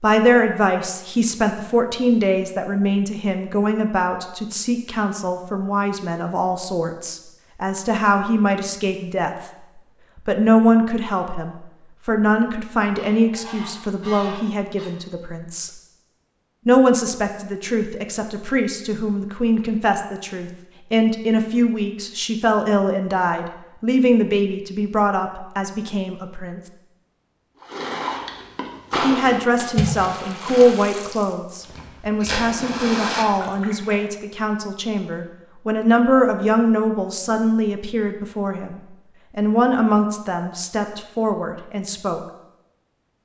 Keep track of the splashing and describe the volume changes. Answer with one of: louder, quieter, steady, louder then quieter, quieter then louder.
quieter then louder.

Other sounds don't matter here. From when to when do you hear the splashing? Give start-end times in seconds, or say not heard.
27.6-34.0.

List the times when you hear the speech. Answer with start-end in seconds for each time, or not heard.
0.0-9.3, 10.2-15.7, 16.6-26.6, 29.0-42.2.